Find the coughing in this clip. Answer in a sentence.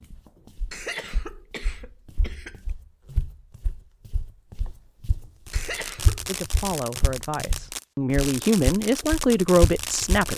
The coughing can be heard from 0.7 to 2.5 s and from 5.5 to 6.2 s.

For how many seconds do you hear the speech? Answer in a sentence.
The speech can be heard for 4 seconds in total.